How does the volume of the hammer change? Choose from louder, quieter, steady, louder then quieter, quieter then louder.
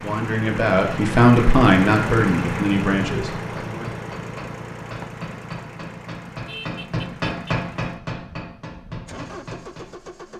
louder then quieter.